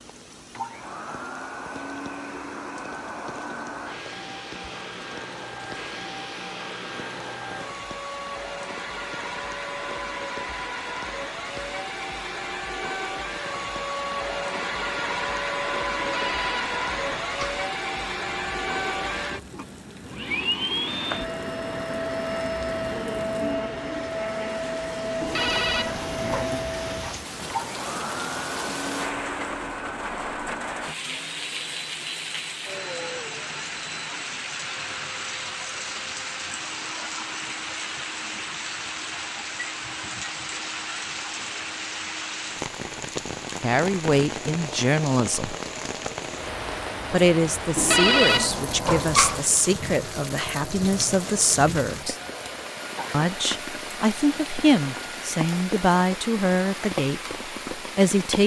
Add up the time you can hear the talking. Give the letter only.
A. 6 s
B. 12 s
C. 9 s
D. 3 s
B.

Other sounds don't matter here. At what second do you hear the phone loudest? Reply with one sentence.
The loudest moment of the phone is at 48 seconds.